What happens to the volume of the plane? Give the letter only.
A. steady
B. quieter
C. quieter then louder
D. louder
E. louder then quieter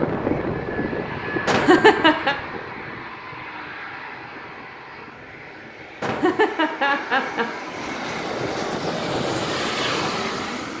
C.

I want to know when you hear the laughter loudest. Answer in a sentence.
The volume of the laughter peaks at 2 seconds.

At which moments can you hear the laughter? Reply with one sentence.
The laughter can be heard from 1.4 to 2.4 s and from 6.0 to 7.5 s.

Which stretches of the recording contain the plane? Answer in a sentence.
The plane can be heard from 0.0 to 10.7 s.